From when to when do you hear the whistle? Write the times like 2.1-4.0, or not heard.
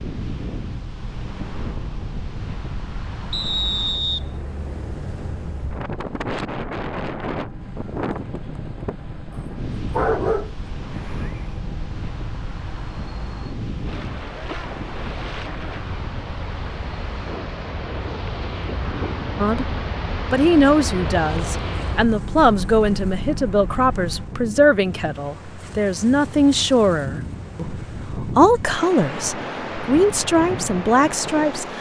3.3-4.2.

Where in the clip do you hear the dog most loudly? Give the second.
10 s.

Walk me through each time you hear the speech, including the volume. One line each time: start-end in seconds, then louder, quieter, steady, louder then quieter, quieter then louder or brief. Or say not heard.
19.4-31.7 steady.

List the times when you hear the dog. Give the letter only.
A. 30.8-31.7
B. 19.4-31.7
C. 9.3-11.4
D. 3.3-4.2
C.